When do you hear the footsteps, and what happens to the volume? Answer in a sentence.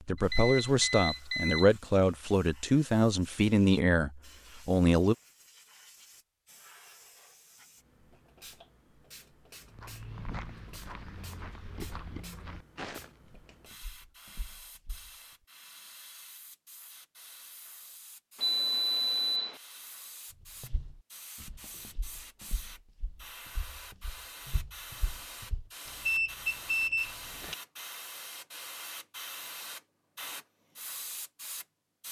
The footsteps can be heard from 9.7 to 15.1 s, getting quieter; and from 20.6 to 25.6 s, getting quieter then louder.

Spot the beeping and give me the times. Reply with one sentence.
You can hear the beeping from 0.1 to 1.7 s, from 18.4 to 19.6 s and from 25.9 to 27.6 s.